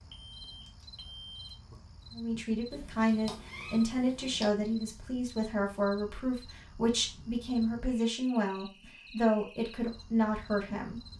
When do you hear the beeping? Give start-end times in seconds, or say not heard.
0.1-1.6.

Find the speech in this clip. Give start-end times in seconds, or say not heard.
2.1-11.0.